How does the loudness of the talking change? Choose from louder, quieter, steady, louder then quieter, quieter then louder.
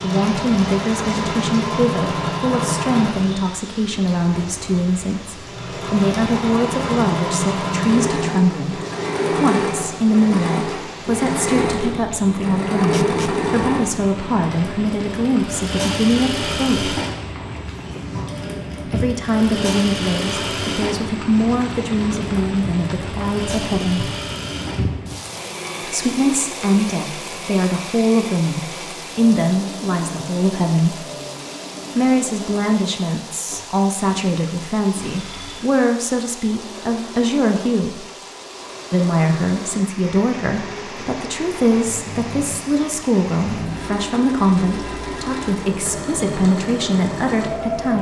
steady.